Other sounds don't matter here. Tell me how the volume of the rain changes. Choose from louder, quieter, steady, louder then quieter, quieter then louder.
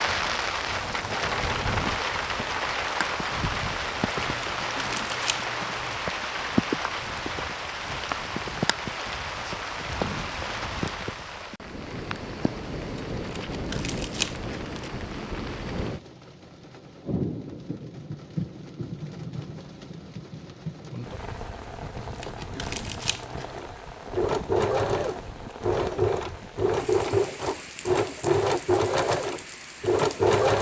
quieter.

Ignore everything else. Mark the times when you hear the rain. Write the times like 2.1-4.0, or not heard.
0.0-30.4.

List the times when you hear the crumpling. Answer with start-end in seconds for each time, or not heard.
4.2-6.0, 13.2-14.9, 21.9-23.6.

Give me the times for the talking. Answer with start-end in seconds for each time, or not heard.
not heard.